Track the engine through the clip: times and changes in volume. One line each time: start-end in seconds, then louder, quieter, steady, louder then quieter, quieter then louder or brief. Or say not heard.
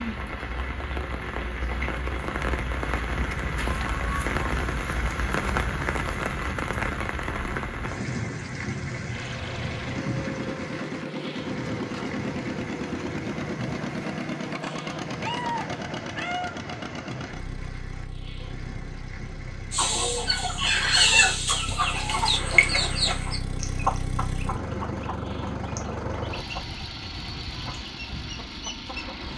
9.1-29.3 quieter then louder.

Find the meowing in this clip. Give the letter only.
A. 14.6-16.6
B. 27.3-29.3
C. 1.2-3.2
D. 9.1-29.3
A.